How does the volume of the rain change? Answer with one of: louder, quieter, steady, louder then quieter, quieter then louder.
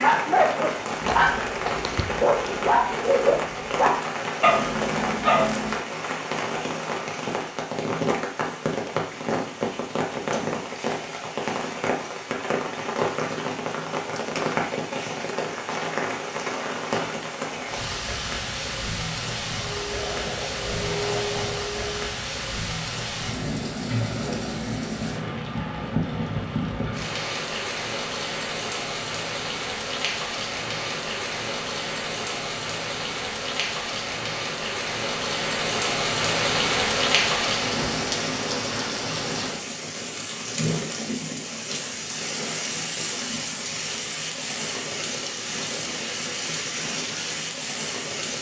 steady.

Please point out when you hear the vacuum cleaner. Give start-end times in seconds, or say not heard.
19.5-22.1.